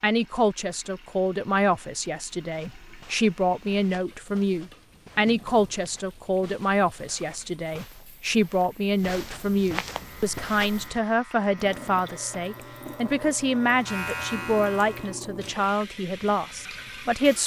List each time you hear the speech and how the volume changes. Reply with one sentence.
You can hear the speech from 0.0 to 17.4 s, at a steady volume.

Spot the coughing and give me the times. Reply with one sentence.
The coughing can't be heard in this clip.